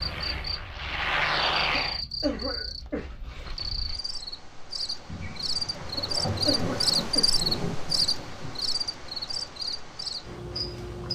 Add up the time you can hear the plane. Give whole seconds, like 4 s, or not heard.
2 s.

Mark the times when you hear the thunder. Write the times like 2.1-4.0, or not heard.
5.0-8.6.